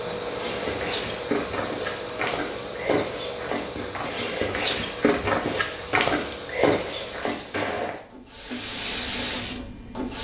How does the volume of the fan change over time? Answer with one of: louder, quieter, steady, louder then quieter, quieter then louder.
quieter.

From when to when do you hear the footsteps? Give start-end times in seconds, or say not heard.
0.2-8.0.